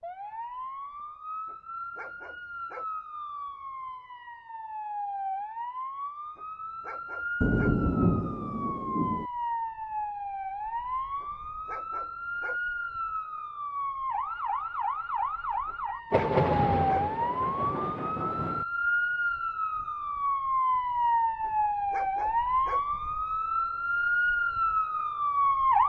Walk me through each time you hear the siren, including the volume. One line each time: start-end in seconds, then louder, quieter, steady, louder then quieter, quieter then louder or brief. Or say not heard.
0.0-25.8 louder.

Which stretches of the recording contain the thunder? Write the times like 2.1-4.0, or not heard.
7.4-9.3, 16.1-18.6.